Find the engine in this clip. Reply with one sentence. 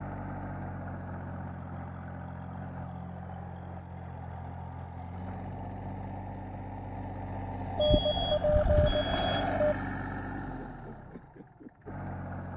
The engine can be heard from 0.0 to 12.5 s.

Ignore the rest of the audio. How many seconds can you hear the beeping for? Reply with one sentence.
You can hear the beeping for 2 seconds altogether.